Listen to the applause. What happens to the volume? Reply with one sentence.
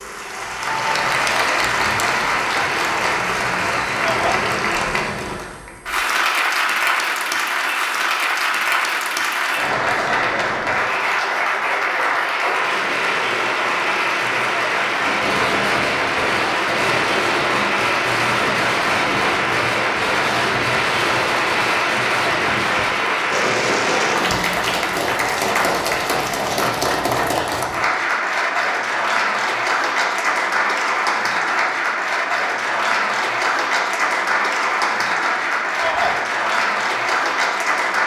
The loudness of the applause stays about the same.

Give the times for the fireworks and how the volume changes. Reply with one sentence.
The fireworks can be heard from 14.9 to 24.4 s, at a steady volume.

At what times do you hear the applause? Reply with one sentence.
You can hear the applause from 0.0 to 38.0 s.